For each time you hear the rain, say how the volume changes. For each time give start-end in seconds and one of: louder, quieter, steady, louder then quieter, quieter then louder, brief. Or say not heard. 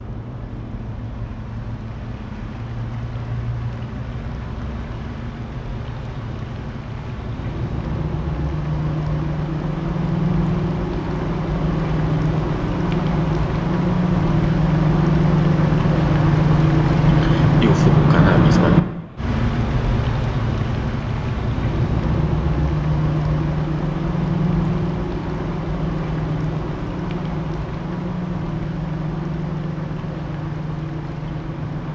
0.0-31.9 louder then quieter.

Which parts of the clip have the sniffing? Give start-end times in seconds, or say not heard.
17.1-18.8.